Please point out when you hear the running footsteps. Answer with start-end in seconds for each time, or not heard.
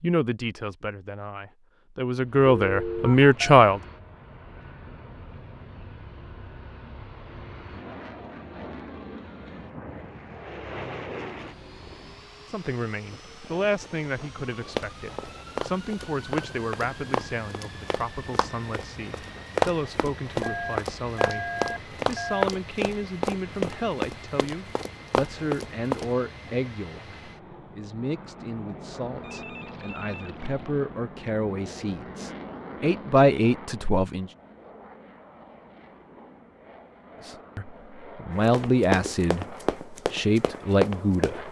14.8-26.1, 38.5-41.4.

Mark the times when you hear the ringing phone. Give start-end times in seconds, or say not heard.
2.6-3.4, 20.4-22.4, 29.1-30.7.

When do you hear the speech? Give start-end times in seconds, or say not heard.
0.0-3.8, 12.4-34.3, 37.2-41.4.